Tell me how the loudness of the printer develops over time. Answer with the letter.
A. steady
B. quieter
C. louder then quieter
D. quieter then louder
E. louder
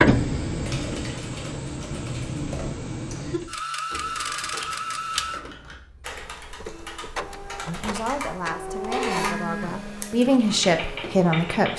A.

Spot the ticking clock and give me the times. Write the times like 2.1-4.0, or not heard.
not heard.